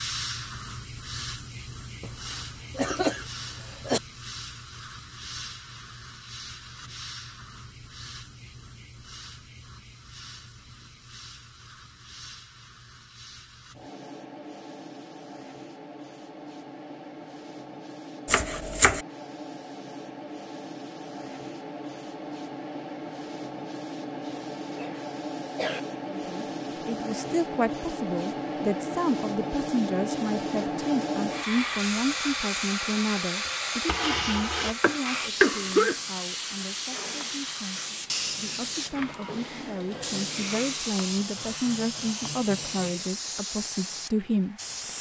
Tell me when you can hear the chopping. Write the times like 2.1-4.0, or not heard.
18.2-19.1.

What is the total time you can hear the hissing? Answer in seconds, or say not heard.
45 s.